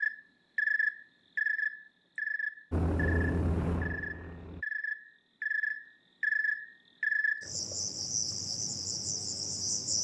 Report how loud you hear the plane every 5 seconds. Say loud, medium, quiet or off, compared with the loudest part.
loud, off.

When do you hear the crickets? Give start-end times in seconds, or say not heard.
0.0-9.9.